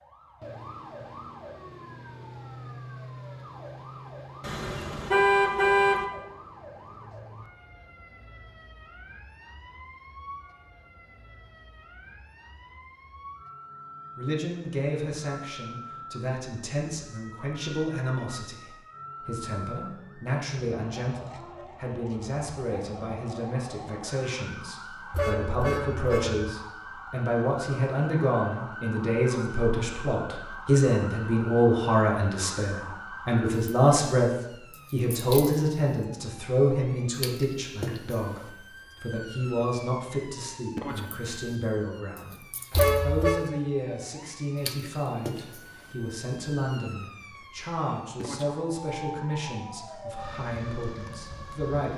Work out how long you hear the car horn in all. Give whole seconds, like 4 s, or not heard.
4 s.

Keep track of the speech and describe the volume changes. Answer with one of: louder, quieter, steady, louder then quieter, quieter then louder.
louder then quieter.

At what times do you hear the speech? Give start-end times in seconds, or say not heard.
14.2-34.3, 34.9-51.9.